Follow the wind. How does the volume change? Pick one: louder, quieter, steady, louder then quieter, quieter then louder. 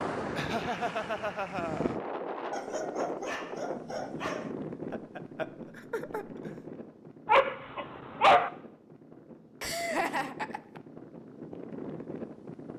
quieter then louder.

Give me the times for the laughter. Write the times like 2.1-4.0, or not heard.
0.3-1.9, 4.9-6.6, 9.6-10.8.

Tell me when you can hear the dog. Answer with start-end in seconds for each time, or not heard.
2.5-4.5, 7.2-8.5.